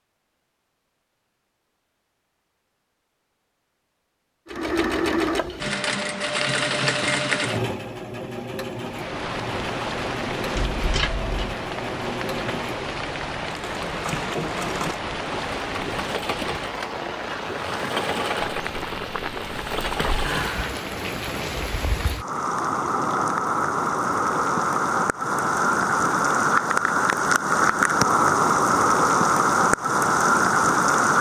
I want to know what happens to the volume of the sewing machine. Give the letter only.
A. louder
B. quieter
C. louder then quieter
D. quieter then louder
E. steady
B.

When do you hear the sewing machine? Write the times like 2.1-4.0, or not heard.
4.5-20.7.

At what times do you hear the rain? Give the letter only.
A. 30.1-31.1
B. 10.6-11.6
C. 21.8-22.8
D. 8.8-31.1
D.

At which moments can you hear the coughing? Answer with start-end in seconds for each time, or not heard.
10.6-11.6.